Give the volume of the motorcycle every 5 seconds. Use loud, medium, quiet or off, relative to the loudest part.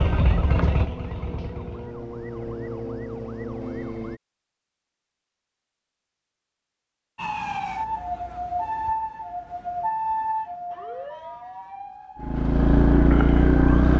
medium, off, loud.